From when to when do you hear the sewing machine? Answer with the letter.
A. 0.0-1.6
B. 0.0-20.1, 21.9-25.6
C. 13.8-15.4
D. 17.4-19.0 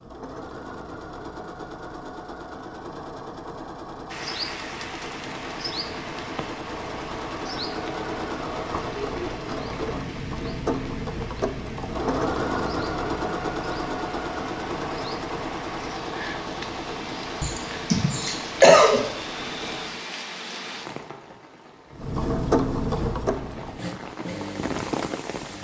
B.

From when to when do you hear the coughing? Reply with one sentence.
The coughing can be heard from 17.4 to 19.0 s.